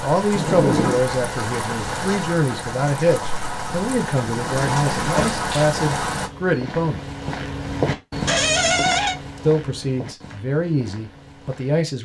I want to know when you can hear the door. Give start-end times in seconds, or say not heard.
0.3-1.0, 4.5-5.4, 8.2-9.2.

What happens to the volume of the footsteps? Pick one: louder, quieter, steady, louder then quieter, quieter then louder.
louder then quieter.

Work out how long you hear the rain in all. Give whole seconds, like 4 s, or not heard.
6 s.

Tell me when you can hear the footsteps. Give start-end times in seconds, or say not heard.
5.5-11.8.